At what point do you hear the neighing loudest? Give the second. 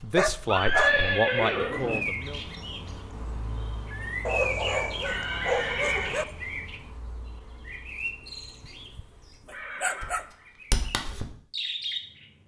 1 s.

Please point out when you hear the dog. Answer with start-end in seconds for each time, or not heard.
0.1-0.9, 4.2-6.2, 8.6-10.2.